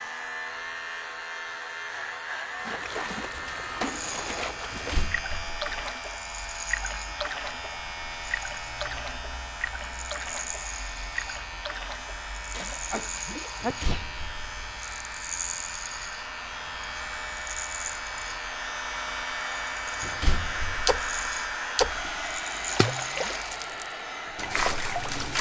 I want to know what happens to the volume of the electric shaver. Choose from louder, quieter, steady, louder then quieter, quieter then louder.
steady.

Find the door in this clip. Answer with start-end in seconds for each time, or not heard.
4.7-5.8, 13.6-14.8, 20.0-20.9.